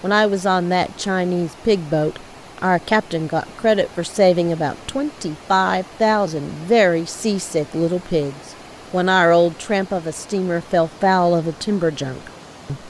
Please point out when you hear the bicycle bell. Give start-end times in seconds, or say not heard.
not heard.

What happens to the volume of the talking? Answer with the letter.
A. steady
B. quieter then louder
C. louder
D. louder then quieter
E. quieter
A.